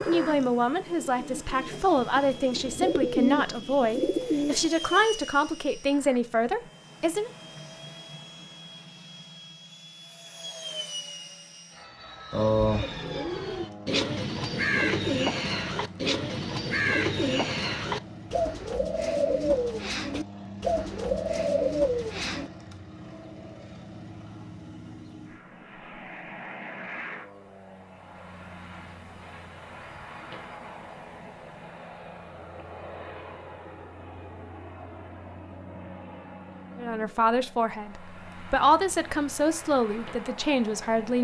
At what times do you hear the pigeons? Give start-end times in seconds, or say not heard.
0.0-4.7, 12.3-22.5.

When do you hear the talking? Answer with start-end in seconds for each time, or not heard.
0.1-7.3, 36.8-41.1.